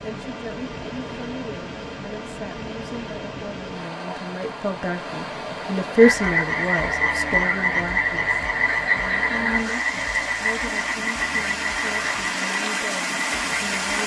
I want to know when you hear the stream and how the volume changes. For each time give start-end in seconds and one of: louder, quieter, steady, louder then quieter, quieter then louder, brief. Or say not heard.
0.0-14.0 louder.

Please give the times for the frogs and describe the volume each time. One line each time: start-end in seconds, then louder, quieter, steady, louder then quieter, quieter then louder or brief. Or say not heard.
6.0-14.0 quieter.